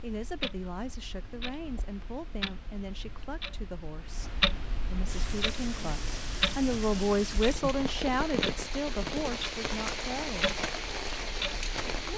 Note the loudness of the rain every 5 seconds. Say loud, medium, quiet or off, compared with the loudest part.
off, loud, loud.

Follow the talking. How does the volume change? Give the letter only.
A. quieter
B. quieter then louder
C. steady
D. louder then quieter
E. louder
D.